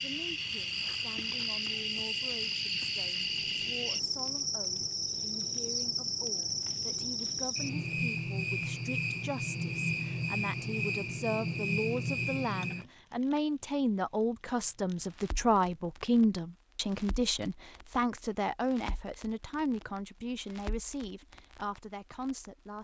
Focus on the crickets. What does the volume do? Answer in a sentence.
The volume of the crickets stays about the same.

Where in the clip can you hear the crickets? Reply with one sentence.
You can hear the crickets from 0.0 to 12.8 s.